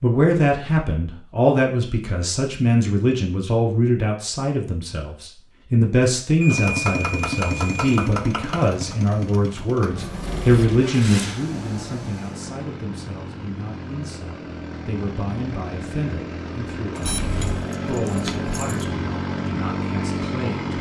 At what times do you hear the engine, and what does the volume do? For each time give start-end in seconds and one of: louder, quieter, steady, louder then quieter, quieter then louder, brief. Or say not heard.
6.5-20.7 quieter then louder.